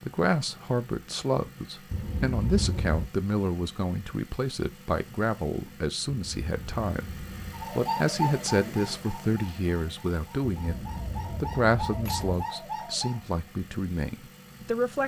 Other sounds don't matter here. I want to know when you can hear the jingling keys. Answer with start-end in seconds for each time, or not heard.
1.9-3.1, 6.1-7.7, 10.6-12.4.